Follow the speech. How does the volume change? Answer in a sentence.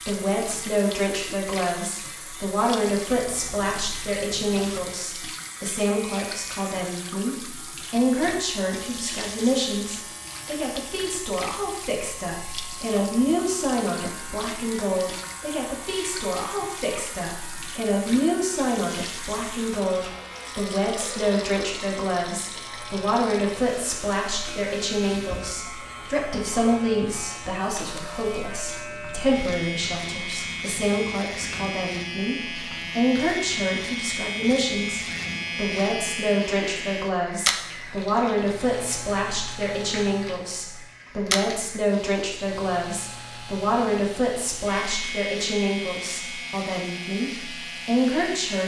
The volume of the speech stays about the same.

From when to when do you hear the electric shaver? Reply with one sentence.
The electric shaver can be heard from 0.0 to 48.6 s.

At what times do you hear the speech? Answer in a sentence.
The speech can be heard from 0.1 to 48.6 s.